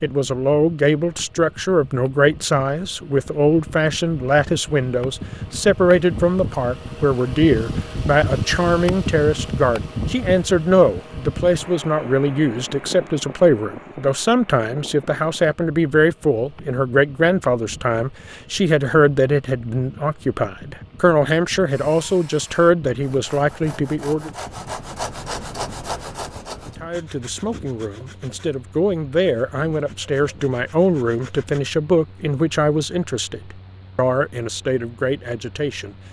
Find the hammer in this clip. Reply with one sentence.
The hammer can't be heard in this clip.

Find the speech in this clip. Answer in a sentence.
The speech can be heard from 0.0 to 24.3 s and from 26.6 to 36.0 s.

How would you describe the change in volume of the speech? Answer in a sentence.
The volume of the speech stays about the same.